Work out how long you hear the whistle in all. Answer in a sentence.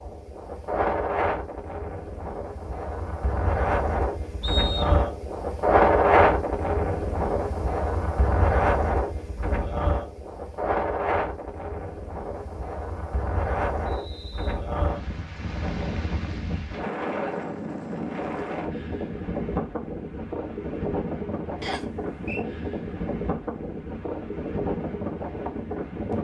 You can hear the whistle for 2 seconds altogether.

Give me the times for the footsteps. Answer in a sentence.
The footsteps can't be heard in this clip.